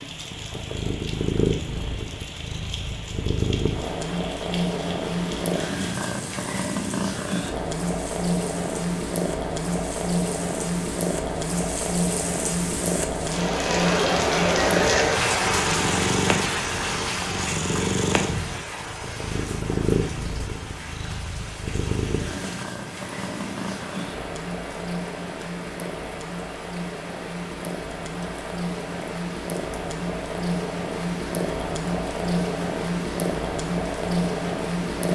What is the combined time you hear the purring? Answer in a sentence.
The purring can be heard for 35 seconds in total.